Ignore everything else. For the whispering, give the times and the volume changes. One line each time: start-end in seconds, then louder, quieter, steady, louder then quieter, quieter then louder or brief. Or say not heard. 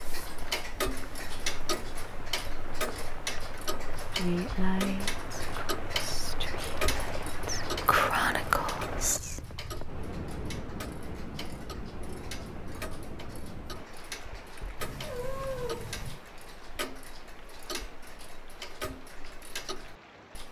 4.1-9.4 quieter then louder.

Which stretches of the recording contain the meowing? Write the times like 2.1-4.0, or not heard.
14.8-16.2.